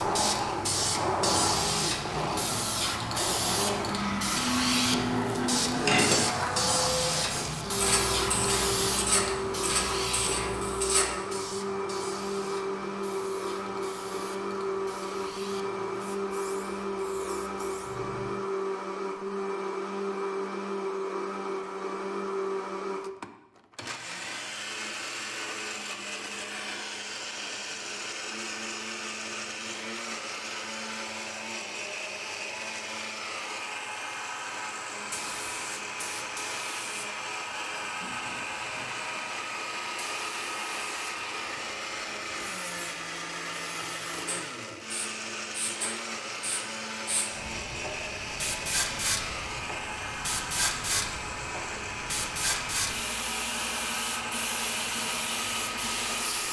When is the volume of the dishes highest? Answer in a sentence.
The volume of the dishes peaks at 6 seconds.